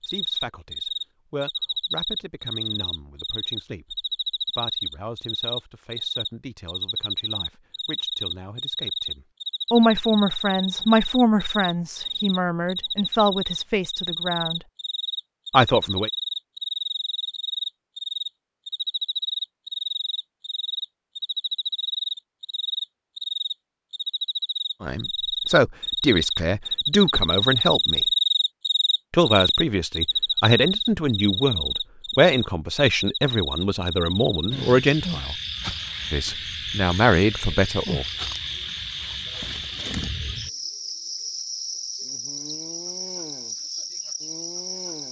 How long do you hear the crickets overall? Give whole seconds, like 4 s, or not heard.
45 s.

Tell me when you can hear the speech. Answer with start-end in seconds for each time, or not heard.
0.1-14.6, 15.5-16.1, 24.8-28.1, 29.1-35.4, 36.1-38.0.